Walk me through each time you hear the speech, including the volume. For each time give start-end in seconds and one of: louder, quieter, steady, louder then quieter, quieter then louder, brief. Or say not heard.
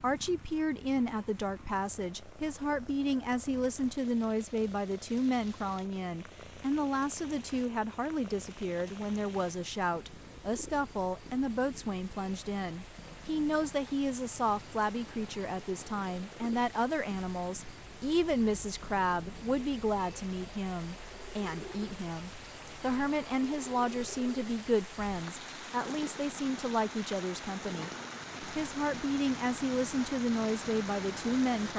0.0-31.7 steady.